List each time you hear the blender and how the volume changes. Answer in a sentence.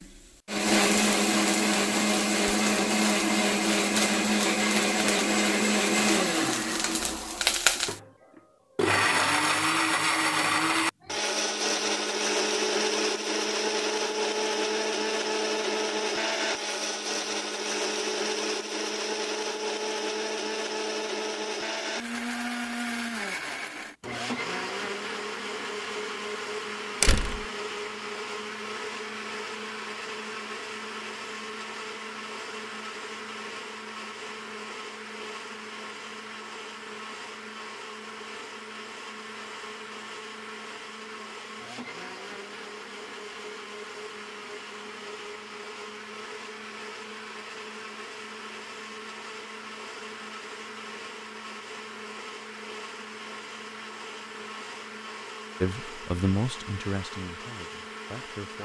You can hear the blender from 0.0 to 58.5 s, getting quieter.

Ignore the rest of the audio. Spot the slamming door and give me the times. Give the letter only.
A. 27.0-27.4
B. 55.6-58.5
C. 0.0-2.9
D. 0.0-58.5
A.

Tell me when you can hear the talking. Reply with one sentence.
You can hear the talking from 55.6 to 58.5 s.